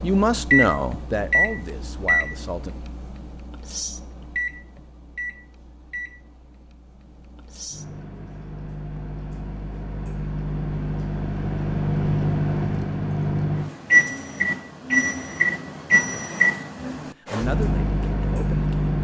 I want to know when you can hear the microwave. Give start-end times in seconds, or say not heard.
0.0-19.0.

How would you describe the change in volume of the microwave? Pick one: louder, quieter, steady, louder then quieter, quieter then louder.
quieter then louder.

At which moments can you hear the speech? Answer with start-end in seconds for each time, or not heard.
0.0-2.8, 17.0-18.9.